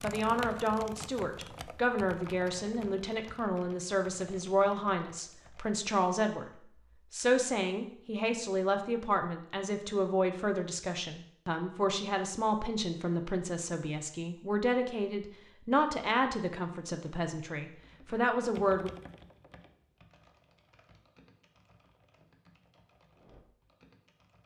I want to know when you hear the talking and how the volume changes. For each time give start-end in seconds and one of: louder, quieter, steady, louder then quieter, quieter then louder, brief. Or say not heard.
0.0-18.9 steady.